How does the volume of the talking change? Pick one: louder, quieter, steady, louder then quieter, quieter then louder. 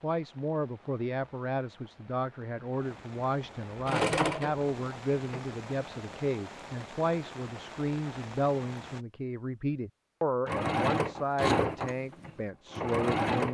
steady.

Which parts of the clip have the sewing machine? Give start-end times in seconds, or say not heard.
3.8-5.4, 10.4-13.4.